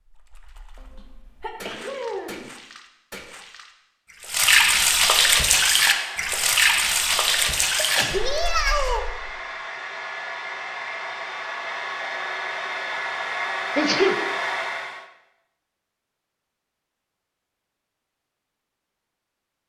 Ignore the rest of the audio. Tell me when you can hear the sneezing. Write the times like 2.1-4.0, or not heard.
0.8-2.5, 7.8-9.1, 13.8-14.2.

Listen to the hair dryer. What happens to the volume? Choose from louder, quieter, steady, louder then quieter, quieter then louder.
louder.